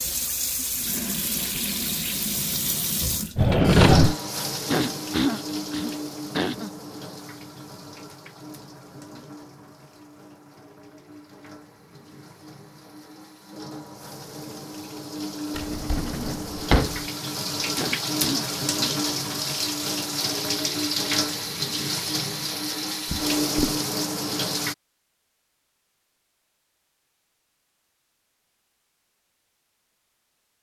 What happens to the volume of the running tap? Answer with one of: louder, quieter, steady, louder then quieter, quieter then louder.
quieter then louder.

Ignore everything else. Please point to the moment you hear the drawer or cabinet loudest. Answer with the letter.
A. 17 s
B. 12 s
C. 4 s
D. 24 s
C.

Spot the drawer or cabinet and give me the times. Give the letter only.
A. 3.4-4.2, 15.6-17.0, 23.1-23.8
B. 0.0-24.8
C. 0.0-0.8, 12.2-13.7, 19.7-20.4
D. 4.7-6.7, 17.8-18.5
A.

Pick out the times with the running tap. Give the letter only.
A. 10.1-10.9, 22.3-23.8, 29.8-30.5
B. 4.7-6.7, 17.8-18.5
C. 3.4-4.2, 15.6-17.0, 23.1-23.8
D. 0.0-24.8
D.